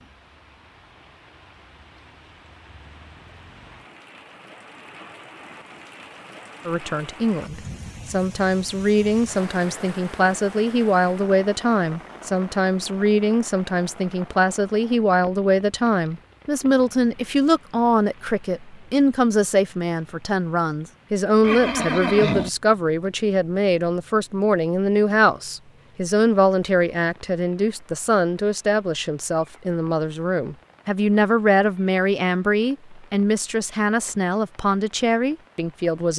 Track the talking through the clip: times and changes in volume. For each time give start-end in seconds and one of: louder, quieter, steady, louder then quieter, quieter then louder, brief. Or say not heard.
6.7-36.1 steady.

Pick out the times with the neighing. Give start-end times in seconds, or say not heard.
21.4-22.5.